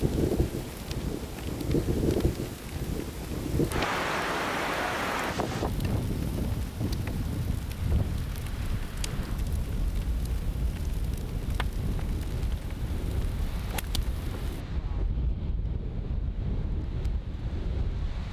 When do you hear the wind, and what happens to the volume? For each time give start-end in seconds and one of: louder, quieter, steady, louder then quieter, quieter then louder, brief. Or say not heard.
0.0-18.2 quieter.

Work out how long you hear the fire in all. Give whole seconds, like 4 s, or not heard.
15 s.